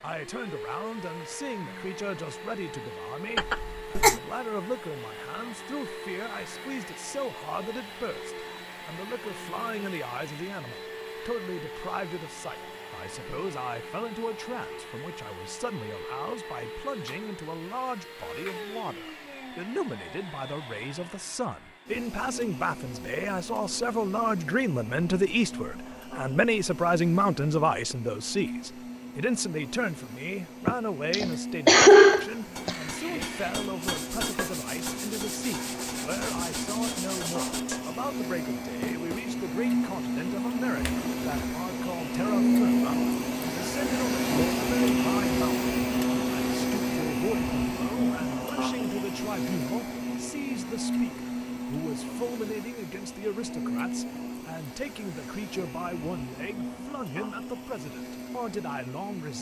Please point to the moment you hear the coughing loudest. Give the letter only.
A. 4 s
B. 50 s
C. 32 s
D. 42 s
C.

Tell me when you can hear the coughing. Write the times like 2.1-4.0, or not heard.
3.4-4.2, 30.6-32.8, 40.8-41.6.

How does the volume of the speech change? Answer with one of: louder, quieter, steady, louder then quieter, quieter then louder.
louder then quieter.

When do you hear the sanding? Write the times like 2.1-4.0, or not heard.
32.5-38.0.